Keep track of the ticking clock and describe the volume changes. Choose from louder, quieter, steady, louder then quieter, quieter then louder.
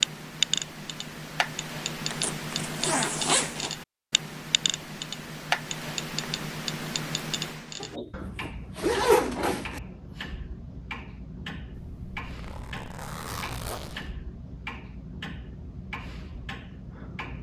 quieter.